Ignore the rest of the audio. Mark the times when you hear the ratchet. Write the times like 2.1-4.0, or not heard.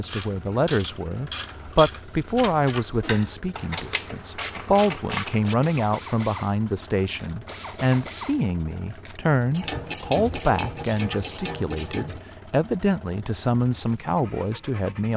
0.0-12.2.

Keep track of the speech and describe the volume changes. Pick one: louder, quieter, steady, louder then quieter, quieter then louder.
steady.